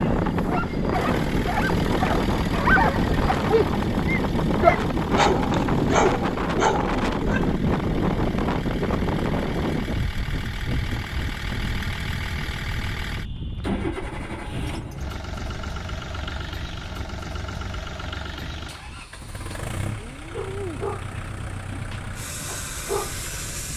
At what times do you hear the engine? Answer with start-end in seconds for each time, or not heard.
0.0-23.7.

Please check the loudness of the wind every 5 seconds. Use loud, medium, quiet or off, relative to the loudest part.
loud, loud, medium, quiet, quiet.